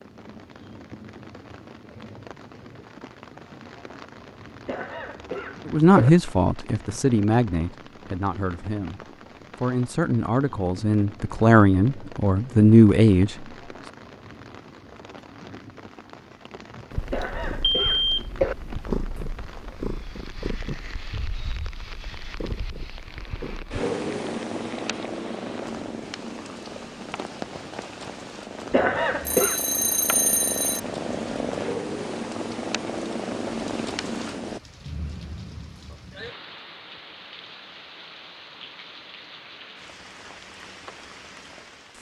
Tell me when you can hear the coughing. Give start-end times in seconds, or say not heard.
4.7-6.1, 17.1-18.6, 28.7-29.6.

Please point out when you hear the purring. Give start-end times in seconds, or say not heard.
16.9-34.6.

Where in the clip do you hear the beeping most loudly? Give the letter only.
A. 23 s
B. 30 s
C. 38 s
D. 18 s
D.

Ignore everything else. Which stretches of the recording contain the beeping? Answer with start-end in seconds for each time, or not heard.
17.1-18.2, 29.2-30.8.